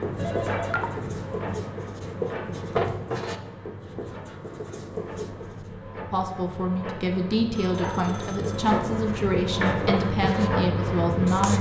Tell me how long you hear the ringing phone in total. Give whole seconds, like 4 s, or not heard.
2 s.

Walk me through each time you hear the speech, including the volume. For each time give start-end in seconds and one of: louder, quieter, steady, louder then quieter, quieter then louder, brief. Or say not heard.
6.1-11.5 steady.